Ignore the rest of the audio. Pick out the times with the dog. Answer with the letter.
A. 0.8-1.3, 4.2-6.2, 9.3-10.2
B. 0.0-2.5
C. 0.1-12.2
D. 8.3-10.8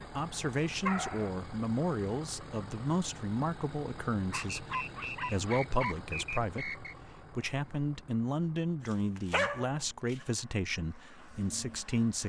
A.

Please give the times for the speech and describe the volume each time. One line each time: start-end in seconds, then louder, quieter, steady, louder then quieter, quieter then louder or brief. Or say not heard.
0.1-12.2 steady.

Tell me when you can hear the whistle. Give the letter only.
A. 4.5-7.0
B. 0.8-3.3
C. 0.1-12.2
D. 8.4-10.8
A.